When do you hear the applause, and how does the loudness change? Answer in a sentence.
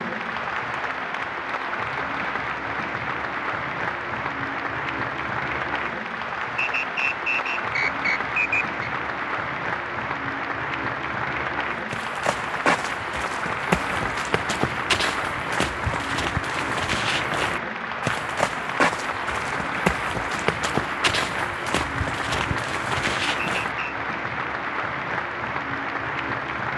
The applause can be heard from 0.0 to 26.7 s, at a steady volume.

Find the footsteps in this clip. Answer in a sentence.
The footsteps can be heard from 11.9 to 23.7 s.